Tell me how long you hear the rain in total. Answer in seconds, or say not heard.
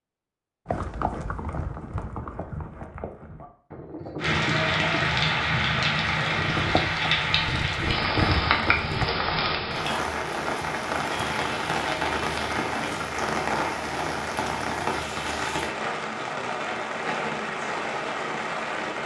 15 s.